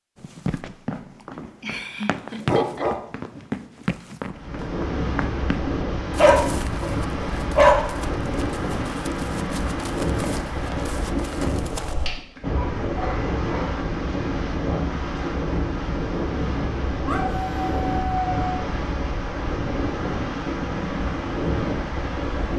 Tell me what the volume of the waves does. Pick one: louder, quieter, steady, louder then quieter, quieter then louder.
steady.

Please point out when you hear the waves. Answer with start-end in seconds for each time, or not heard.
4.3-22.5.